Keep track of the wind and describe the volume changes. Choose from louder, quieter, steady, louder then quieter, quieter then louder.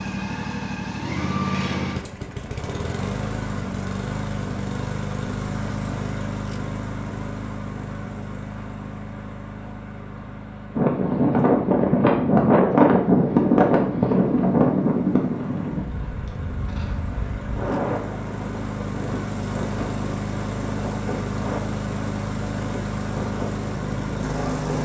quieter.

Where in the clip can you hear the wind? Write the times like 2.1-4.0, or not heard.
10.8-24.8.